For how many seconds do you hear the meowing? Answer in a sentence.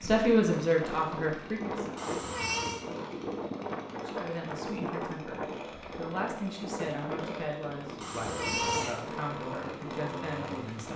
You can hear the meowing for 2 seconds altogether.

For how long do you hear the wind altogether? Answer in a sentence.
You can hear the wind for 11 seconds altogether.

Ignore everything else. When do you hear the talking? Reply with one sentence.
The talking can be heard from 0.0 to 1.9 s and from 3.9 to 10.9 s.